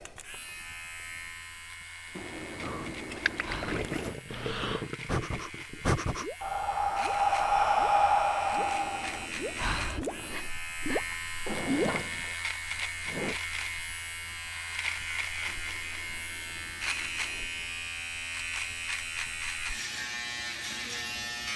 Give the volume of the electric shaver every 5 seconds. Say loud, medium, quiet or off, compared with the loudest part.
medium, medium, loud, loud, loud.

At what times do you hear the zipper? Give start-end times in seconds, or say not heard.
2.1-4.2, 8.6-10.6, 15.4-17.5.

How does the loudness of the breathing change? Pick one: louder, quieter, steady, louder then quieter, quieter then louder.
louder then quieter.